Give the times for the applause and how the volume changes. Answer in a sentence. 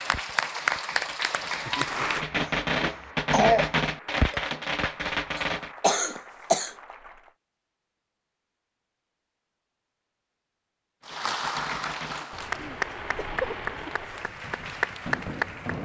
The applause can be heard from 0.0 to 7.3 s, getting quieter; and from 11.1 to 15.8 s, getting quieter then louder.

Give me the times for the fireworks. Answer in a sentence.
The fireworks can be heard from 0.0 to 5.7 s and from 11.0 to 15.8 s.